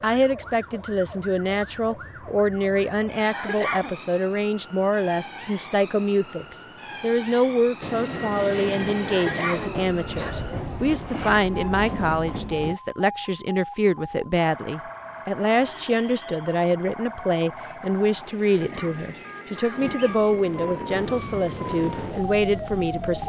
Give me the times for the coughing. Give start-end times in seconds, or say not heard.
3.2-4.0, 9.1-10.3, 18.4-19.9.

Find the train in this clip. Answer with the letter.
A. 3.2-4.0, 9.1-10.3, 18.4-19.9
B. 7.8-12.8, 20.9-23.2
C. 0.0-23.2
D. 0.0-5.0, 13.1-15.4
B.